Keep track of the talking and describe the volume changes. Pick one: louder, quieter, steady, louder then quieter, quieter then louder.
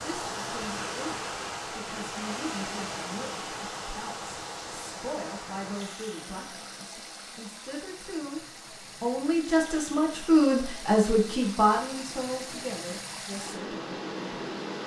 louder then quieter.